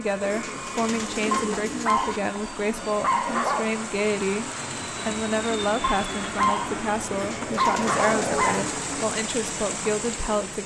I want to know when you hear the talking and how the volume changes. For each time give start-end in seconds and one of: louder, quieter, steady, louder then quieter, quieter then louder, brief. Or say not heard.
0.0-10.6 steady.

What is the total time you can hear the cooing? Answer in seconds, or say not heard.
4 s.